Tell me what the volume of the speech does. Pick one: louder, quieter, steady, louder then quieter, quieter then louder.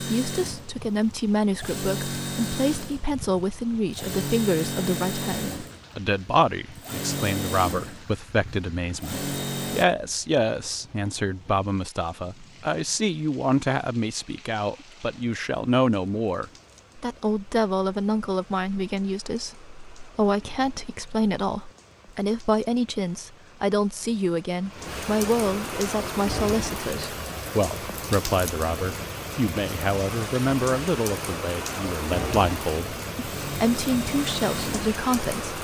steady.